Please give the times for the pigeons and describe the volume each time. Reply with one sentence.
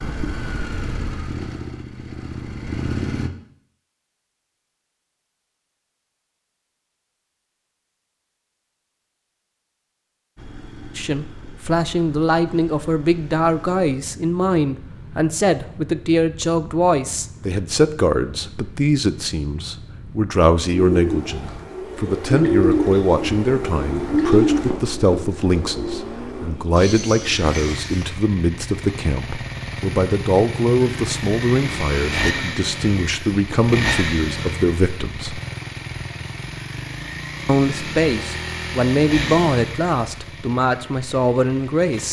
You can hear the pigeons from 20.7 to 28.1 s, getting louder then quieter.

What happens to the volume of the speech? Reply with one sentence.
The loudness of the speech stays about the same.